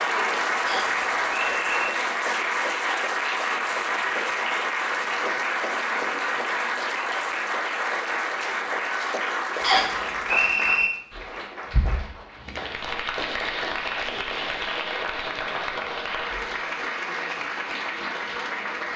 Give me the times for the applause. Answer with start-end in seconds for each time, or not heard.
0.0-18.9.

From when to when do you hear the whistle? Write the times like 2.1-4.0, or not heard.
0.7-1.9, 9.6-10.9.